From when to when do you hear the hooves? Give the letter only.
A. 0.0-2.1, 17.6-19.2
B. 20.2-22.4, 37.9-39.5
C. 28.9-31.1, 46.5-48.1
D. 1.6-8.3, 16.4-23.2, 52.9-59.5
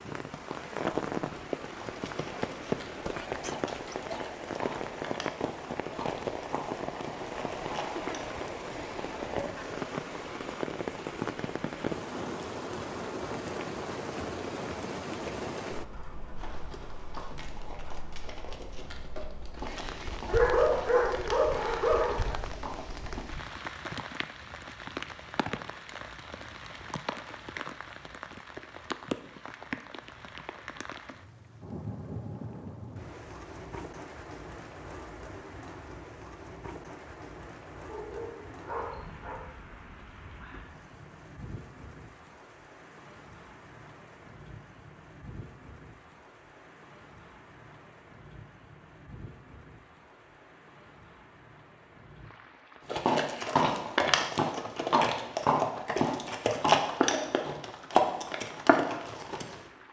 D.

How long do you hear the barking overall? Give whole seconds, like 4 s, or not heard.
4 s.